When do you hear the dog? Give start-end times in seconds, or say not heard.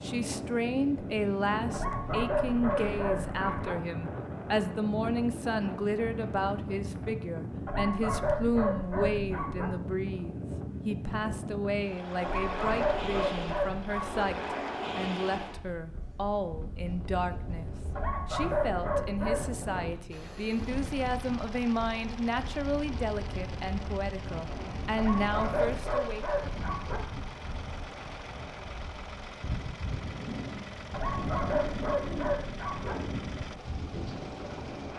1.7-3.8, 7.7-9.7, 12.2-14.2, 17.9-19.5, 24.9-27.0, 30.9-33.0.